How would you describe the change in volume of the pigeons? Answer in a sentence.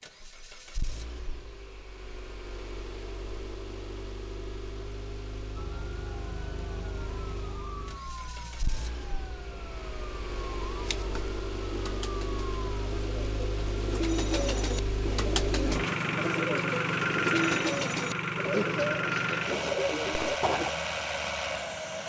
The volume of the pigeons goes up.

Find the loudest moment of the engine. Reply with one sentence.
The volume of the engine peaks at 17 seconds.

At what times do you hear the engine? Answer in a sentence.
The engine can be heard from 0.0 to 22.0 s.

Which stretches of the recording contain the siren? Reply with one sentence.
You can hear the siren from 5.5 to 13.1 s.